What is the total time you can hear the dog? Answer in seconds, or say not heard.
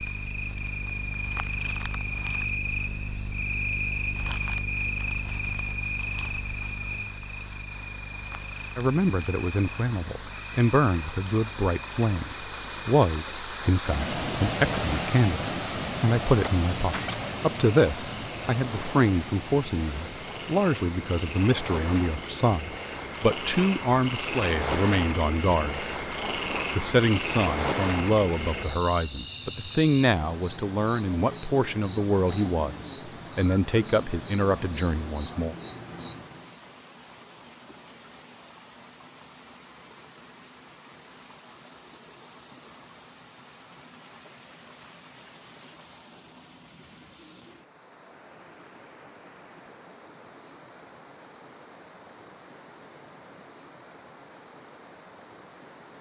not heard.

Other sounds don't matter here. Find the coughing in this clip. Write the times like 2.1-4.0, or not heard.
16.4-17.2.